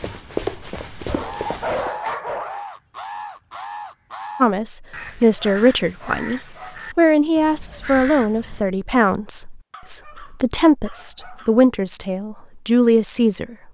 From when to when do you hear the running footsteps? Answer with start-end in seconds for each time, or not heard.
0.0-1.9.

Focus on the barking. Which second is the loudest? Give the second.
2 s.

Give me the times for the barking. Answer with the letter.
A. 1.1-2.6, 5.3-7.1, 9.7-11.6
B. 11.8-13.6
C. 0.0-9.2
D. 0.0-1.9
A.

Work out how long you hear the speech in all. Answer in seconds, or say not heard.
9 s.